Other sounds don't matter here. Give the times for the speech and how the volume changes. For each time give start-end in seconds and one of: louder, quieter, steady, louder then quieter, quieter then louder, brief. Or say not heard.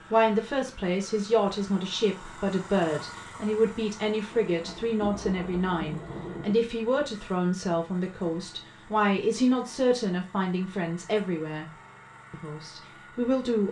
0.1-11.7 steady
12.3-13.6 brief.